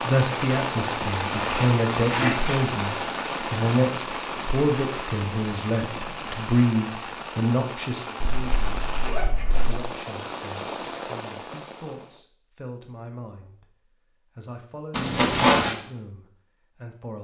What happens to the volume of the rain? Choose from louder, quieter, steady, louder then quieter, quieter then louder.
quieter.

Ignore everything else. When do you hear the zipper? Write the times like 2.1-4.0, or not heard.
1.2-2.6, 8.2-9.8, 14.9-15.8.